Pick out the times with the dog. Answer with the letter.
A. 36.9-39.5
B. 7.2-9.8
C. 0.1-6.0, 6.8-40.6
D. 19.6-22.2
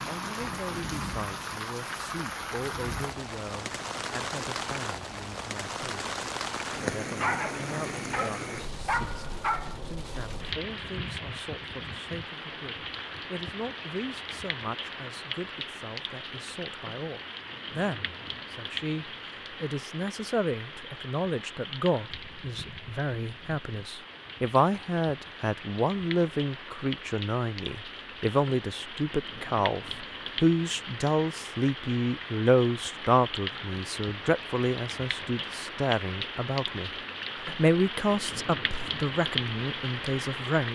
B.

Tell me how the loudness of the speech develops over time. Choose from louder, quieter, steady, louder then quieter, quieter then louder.
louder.